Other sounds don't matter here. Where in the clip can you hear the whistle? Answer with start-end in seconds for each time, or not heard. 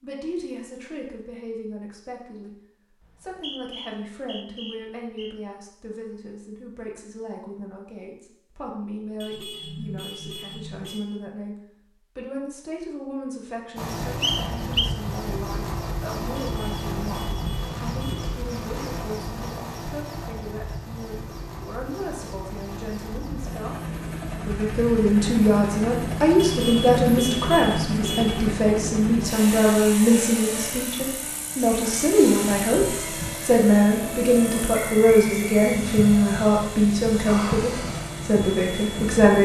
3.0-5.3, 14.2-14.9, 34.7-35.7.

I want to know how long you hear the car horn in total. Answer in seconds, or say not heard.
6 s.